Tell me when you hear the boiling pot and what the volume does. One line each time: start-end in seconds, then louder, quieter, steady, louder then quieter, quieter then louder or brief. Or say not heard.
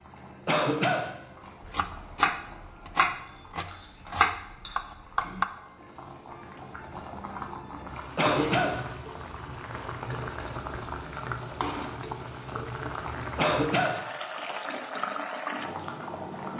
0.0-16.5 louder.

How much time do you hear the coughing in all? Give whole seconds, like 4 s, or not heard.
2 s.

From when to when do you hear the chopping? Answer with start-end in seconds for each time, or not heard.
1.6-5.5.